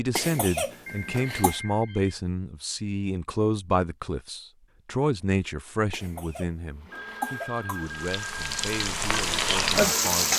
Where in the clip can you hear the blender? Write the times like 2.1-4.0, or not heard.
6.8-10.3.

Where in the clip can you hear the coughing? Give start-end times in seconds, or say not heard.
0.1-1.6, 5.9-7.8.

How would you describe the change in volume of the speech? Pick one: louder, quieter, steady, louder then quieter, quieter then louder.
quieter.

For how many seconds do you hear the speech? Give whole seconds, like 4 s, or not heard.
10 s.